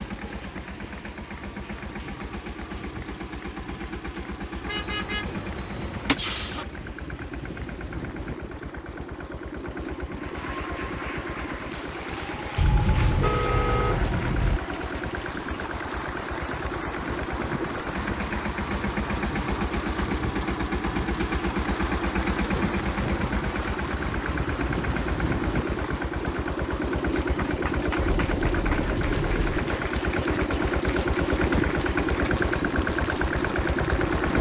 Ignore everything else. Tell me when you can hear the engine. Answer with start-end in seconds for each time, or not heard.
0.0-34.3.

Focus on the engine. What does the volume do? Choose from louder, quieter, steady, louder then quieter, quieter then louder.
louder.